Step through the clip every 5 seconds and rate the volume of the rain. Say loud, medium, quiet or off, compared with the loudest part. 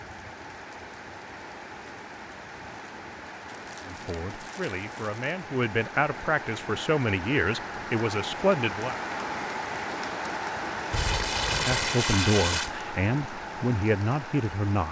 medium, loud, loud.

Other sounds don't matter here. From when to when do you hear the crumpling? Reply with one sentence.
You can hear the crumpling from 3.5 to 5.3 s and from 10.9 to 12.7 s.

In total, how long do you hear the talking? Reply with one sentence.
You can hear the talking for 8 seconds altogether.